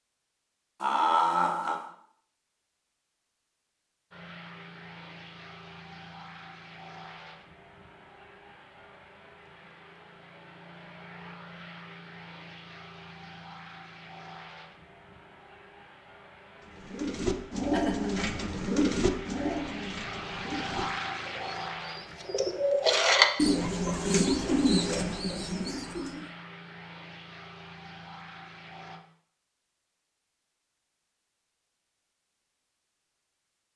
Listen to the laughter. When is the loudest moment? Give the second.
1 s.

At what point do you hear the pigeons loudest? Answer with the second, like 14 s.
23 s.